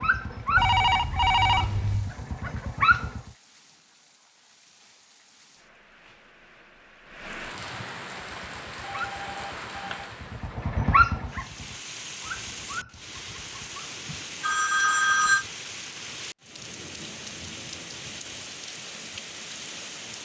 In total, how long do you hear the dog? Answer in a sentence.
The dog can be heard for 9 seconds in total.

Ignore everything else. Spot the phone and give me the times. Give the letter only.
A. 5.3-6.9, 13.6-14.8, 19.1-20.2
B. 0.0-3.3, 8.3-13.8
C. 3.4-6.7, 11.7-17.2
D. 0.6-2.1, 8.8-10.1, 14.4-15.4
D.